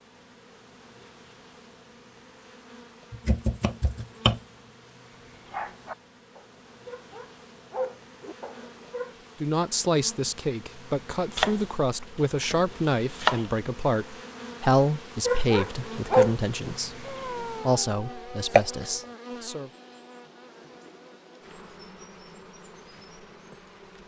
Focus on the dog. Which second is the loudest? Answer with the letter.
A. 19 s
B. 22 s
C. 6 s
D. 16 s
D.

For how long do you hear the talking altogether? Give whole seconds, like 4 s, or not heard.
10 s.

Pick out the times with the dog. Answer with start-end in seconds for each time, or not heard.
5.3-9.2, 15.2-19.0.